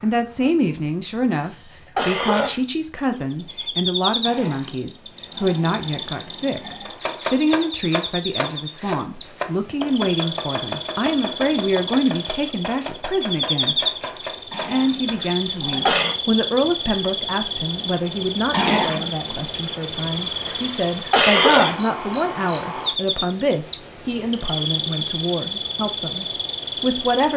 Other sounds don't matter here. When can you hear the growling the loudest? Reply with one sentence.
The volume of the growling peaks at 19 seconds.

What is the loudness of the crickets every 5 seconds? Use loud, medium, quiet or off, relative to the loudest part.
medium, medium, loud, loud, loud, loud.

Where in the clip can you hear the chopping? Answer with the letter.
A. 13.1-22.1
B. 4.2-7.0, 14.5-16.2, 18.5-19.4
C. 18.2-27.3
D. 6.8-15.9
D.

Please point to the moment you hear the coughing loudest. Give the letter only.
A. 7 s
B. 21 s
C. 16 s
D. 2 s
B.